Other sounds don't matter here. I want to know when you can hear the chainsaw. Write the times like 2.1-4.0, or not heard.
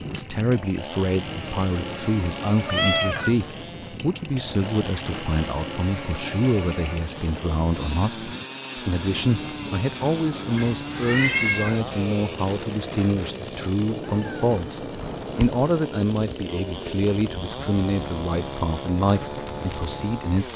0.0-20.5.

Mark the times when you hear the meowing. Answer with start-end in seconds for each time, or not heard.
2.6-3.4, 10.6-11.8, 14.0-15.6.